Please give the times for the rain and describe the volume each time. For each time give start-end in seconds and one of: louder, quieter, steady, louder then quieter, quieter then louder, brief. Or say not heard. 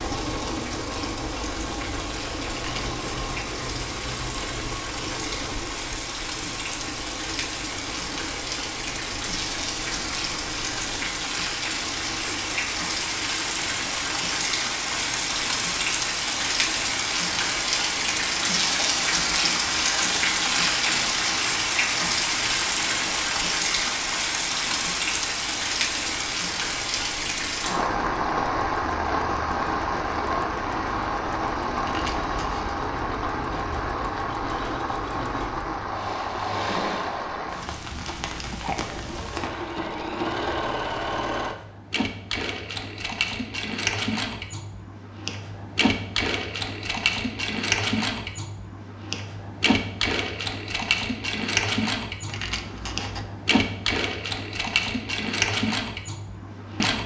0.0-39.8 louder then quieter.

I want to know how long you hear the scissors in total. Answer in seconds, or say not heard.
4 s.